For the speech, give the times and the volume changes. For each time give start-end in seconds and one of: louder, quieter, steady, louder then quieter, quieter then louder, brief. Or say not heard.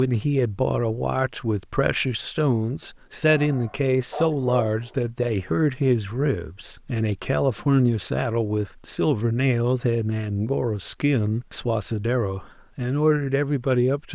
0.0-14.1 steady.